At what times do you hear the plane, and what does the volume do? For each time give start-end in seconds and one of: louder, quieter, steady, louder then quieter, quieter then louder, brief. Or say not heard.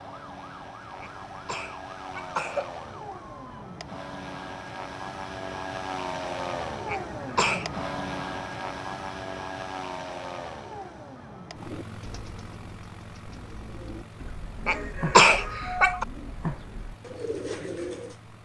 0.0-18.4 louder then quieter.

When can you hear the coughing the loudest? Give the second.
15 s.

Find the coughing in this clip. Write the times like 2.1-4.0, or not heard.
1.0-2.7, 6.8-7.8, 14.7-16.1.